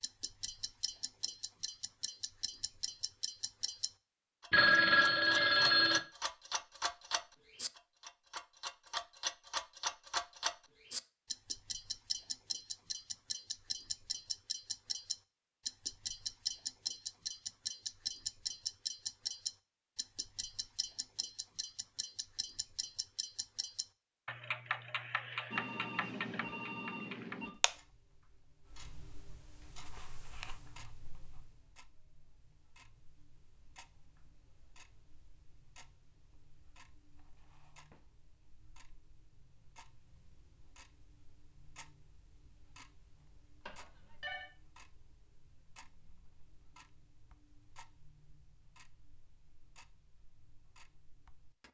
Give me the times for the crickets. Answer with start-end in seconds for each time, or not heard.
not heard.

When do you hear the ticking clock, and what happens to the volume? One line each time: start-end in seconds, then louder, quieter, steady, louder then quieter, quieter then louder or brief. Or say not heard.
0.0-51.7 quieter.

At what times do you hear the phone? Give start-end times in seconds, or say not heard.
4.5-6.0, 25.5-27.5, 43.6-44.5.